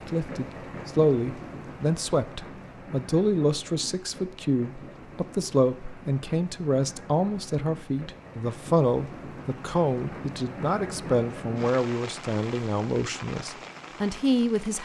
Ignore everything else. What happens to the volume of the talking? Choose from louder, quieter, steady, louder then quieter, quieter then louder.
steady.